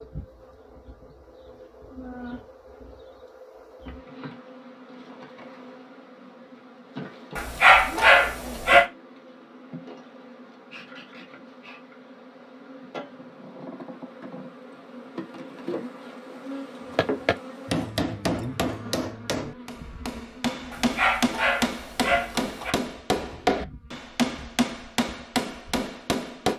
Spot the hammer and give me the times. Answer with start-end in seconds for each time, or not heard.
16.9-26.5.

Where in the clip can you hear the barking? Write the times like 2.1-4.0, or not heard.
7.3-8.8, 20.7-22.7.